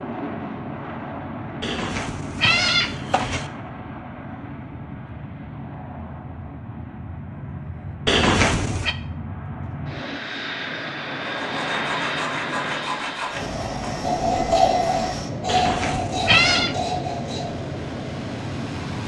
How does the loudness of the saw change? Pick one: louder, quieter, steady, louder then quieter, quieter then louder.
louder then quieter.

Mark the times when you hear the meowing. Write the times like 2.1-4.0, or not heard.
1.6-3.5, 8.1-8.9, 15.4-16.8.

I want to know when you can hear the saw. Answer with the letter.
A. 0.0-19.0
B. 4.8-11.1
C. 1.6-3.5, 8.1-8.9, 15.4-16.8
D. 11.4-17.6
D.